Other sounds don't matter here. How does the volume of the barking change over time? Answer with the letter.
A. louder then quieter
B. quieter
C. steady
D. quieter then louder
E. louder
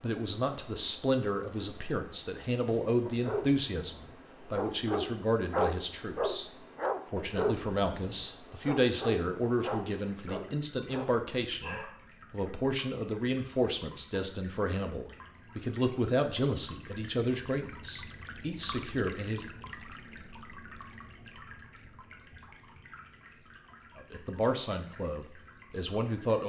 A.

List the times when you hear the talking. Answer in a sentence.
The talking can be heard from 0.0 to 19.4 s and from 23.9 to 26.4 s.